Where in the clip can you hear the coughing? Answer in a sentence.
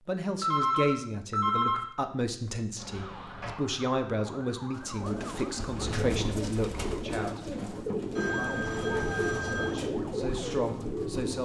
The coughing can't be heard in this clip.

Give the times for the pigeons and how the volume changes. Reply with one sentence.
The pigeons can be heard from 4.8 to 11.3 s, at a steady volume.